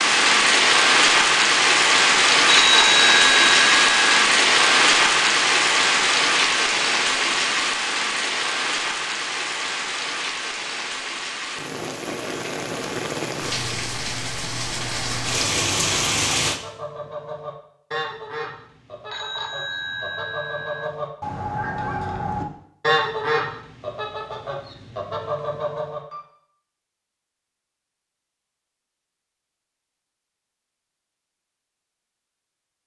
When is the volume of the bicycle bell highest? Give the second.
3 s.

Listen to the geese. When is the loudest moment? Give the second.
23 s.